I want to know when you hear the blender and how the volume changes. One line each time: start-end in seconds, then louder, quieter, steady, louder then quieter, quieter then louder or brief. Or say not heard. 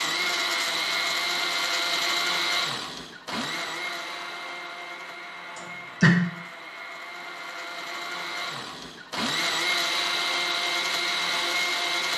0.0-12.1 quieter then louder.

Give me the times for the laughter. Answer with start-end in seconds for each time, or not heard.
5.5-6.2.